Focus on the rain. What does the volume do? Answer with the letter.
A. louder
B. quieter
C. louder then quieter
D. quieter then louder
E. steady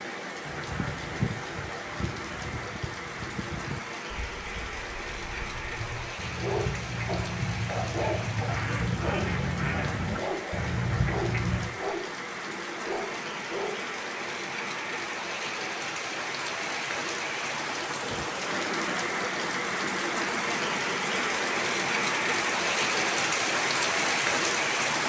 A.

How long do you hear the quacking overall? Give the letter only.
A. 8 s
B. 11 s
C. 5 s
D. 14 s
B.